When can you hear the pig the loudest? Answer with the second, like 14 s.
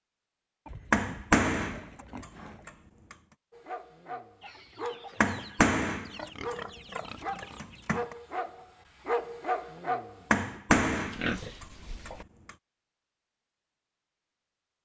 11 s.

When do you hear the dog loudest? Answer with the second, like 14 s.
9 s.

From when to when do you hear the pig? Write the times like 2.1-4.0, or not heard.
0.7-2.7, 6.1-7.6, 10.9-12.2.